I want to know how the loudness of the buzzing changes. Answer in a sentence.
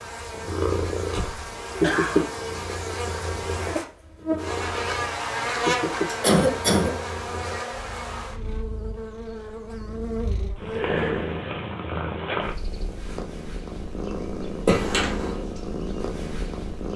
The volume of the buzzing goes up, then down.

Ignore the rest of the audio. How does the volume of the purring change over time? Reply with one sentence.
The loudness of the purring goes down, then up.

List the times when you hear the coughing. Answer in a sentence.
You can hear the coughing from 1.1 to 2.3 s, from 6.2 to 6.9 s and from 14.7 to 15.3 s.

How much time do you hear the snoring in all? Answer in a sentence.
You can't hear the snoring here.